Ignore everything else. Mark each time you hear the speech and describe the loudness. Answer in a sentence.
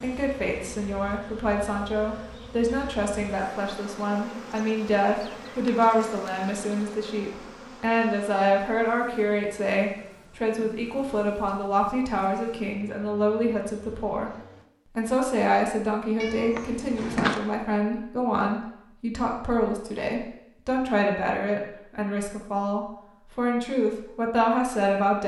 The speech can be heard from 0.0 to 25.2 s, at a steady volume.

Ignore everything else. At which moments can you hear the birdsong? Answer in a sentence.
You can't hear the birdsong here.